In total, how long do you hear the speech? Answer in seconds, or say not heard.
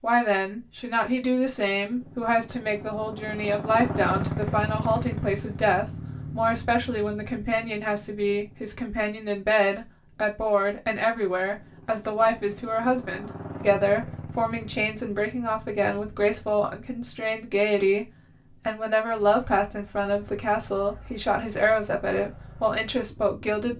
24 s.